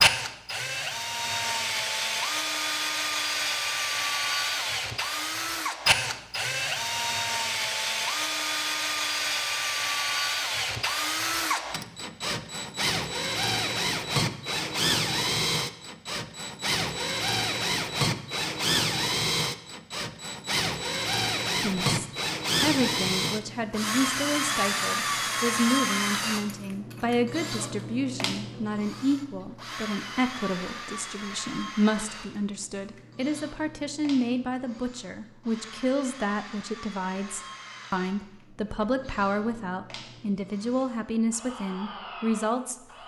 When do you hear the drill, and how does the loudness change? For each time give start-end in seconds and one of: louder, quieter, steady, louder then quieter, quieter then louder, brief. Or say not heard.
0.0-43.0 quieter.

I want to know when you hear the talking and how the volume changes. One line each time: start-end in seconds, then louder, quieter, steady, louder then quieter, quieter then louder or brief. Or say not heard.
21.6-42.8 steady.